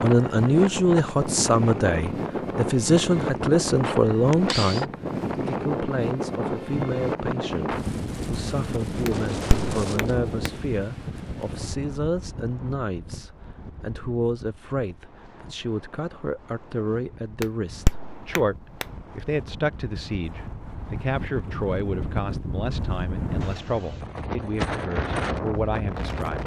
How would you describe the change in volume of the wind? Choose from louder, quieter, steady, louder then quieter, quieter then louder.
quieter then louder.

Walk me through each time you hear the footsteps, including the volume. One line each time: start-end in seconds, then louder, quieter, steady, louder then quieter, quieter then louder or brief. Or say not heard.
not heard.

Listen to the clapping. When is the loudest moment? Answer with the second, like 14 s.
18 s.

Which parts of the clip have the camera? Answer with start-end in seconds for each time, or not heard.
3.9-4.8.